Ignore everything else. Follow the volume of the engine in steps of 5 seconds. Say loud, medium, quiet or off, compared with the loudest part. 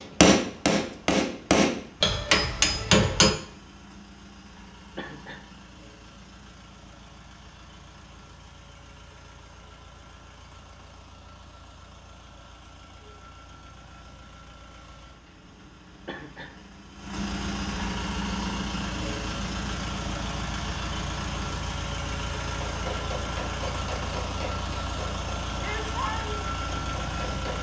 quiet, quiet, quiet, loud, loud, loud.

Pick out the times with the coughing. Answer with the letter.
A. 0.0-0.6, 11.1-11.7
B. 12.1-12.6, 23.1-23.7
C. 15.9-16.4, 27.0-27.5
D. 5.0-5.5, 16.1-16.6
D.